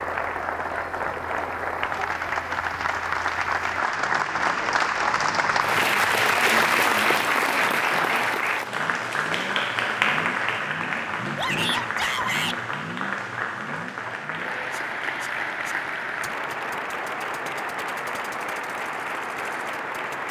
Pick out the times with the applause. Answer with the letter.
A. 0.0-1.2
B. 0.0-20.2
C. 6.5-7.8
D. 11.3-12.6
B.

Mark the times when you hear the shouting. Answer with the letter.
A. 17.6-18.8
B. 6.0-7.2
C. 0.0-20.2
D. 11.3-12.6
D.